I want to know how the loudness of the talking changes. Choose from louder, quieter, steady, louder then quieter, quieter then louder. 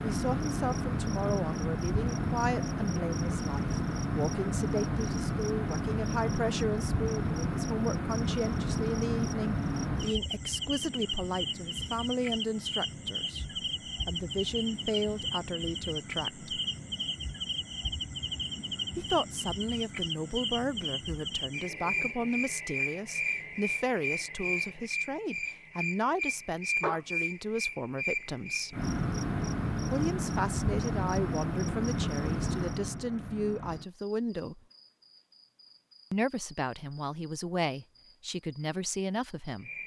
steady.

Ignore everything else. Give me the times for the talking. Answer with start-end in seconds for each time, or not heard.
0.0-16.5, 18.9-28.8, 29.9-34.6, 36.1-39.7.